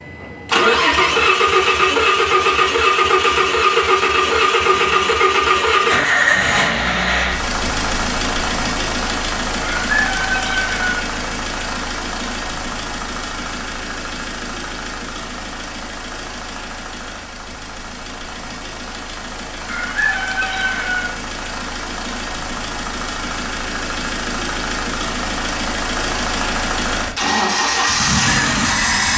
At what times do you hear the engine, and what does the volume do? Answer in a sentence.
The engine can be heard from 0.0 to 29.1 s, getting quieter then louder.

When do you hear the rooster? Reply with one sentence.
You can hear the rooster from 9.6 to 11.1 s and from 19.6 to 21.1 s.